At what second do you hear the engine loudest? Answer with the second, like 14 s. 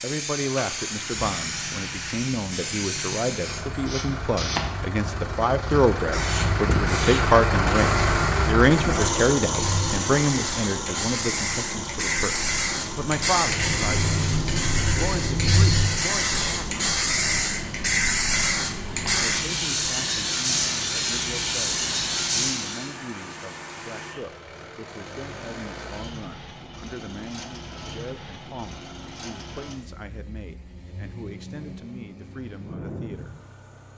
8 s.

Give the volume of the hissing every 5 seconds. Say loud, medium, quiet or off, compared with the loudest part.
medium, medium, loud, loud, loud, off, off.